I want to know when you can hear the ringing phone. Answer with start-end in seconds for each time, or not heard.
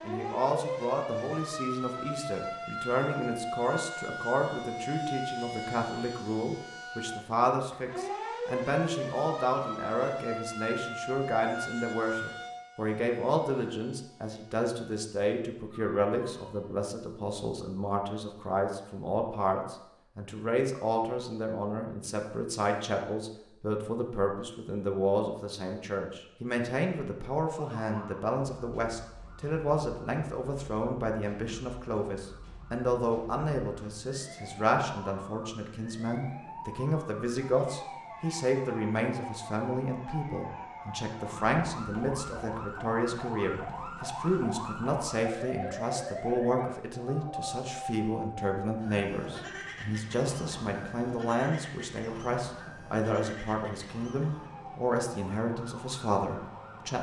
not heard.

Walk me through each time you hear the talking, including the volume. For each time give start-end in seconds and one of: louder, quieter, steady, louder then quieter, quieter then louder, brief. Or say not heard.
0.0-56.9 steady.